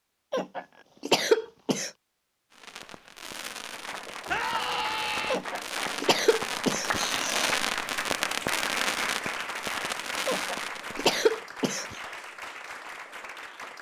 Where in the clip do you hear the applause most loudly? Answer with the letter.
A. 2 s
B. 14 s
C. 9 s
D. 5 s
C.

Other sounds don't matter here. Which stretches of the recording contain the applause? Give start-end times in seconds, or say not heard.
3.7-13.7.